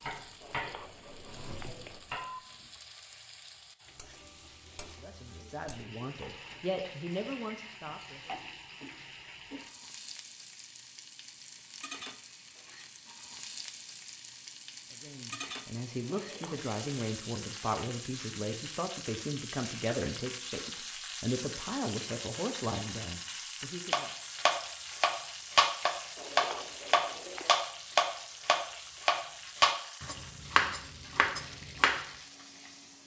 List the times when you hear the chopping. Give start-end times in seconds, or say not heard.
0.0-2.2, 23.9-32.0.